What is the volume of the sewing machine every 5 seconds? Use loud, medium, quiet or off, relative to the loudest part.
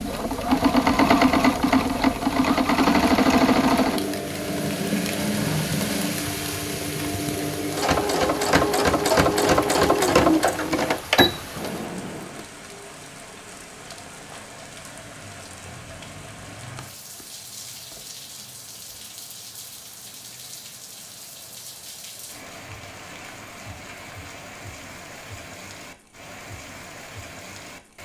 loud, loud, loud, off, off, off.